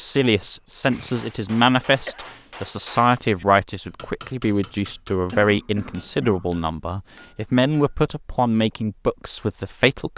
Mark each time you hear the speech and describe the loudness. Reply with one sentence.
The speech can be heard from 0.0 to 10.1 s, at a steady volume.